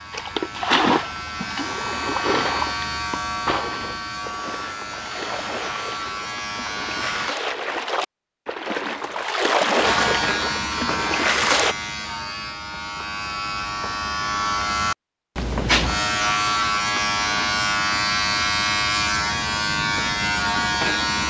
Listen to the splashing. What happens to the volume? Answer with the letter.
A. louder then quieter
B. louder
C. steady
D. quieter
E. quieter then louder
E.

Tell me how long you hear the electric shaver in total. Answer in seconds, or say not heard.
19 s.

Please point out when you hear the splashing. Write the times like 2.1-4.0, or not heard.
0.1-11.8.